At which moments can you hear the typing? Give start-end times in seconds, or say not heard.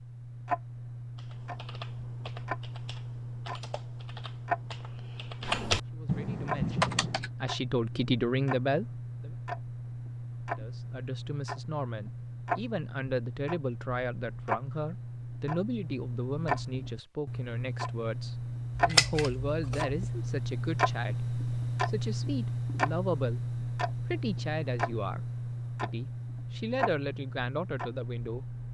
1.1-7.3.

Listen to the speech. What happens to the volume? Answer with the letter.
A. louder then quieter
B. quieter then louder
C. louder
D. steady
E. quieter
D.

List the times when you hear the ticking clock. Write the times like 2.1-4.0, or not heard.
0.0-28.6.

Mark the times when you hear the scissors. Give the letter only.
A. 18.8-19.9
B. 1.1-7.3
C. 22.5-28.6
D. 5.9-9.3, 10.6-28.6
A.